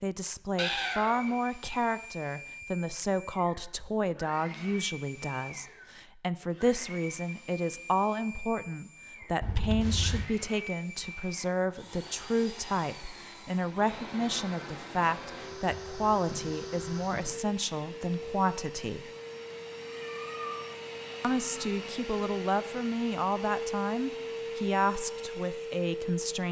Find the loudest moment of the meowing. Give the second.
1 s.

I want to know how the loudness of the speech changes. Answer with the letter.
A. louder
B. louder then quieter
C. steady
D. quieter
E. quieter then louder
C.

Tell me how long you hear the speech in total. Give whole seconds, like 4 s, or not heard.
24 s.